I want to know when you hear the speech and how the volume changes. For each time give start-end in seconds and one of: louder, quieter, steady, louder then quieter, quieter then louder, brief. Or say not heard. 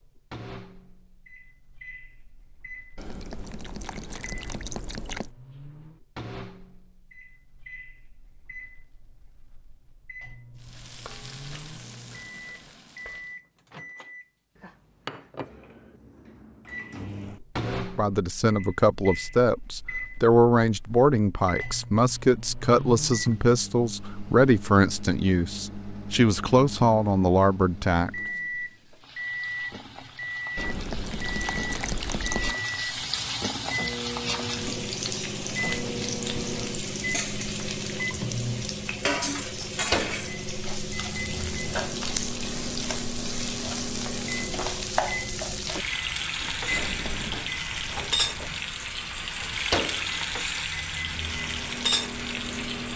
17.6-28.1 steady.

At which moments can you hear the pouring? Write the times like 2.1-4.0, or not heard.
3.0-5.3, 30.6-32.5, 46.7-47.5.